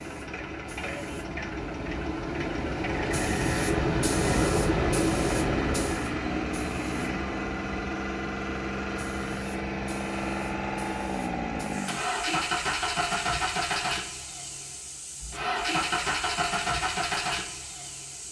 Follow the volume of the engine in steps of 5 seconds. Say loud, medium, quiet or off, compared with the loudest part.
medium, loud, loud, loud.